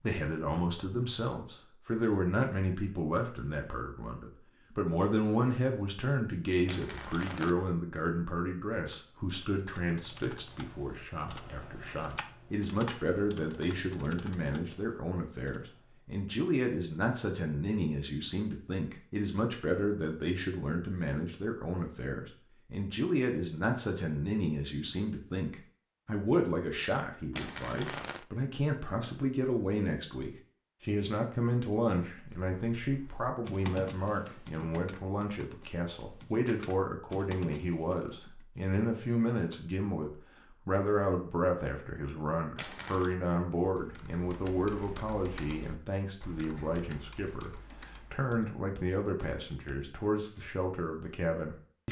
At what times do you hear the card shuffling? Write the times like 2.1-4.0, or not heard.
6.7-7.5, 27.3-28.2, 42.5-43.1.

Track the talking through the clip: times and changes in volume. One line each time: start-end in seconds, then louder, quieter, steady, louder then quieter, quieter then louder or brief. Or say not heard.
0.0-51.8 steady.